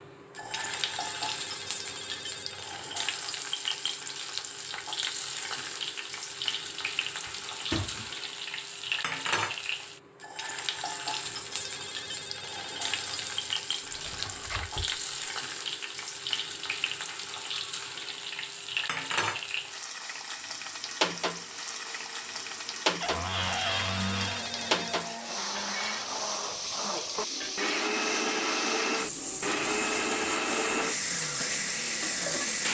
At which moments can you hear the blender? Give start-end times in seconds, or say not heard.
20.8-32.7.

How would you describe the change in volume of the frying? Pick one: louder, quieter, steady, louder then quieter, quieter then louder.
steady.